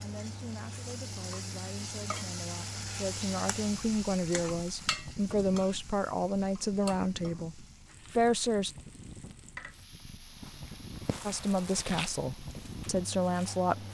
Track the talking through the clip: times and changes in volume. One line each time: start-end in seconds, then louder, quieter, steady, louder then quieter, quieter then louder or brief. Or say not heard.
0.0-8.7 louder
11.2-13.8 brief.